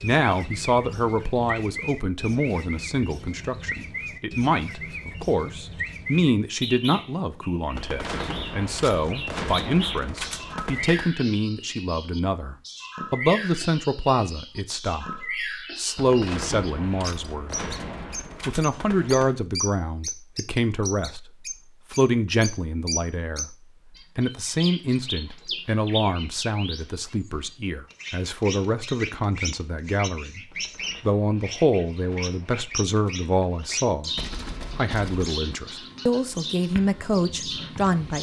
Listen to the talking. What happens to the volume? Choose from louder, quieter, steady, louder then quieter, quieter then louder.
steady.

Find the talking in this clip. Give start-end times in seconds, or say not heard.
0.0-17.6, 18.4-23.6, 24.1-30.4, 31.0-34.1, 34.8-38.1.